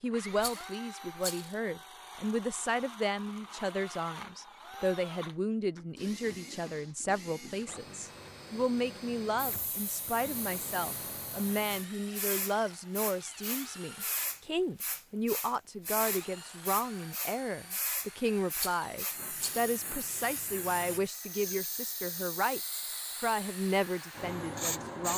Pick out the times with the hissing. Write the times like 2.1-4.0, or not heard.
9.3-25.1.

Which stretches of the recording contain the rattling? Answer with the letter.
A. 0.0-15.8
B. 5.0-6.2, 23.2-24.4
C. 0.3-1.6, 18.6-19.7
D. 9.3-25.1
C.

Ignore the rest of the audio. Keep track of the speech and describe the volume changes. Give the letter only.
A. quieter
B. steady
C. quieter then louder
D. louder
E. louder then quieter
B.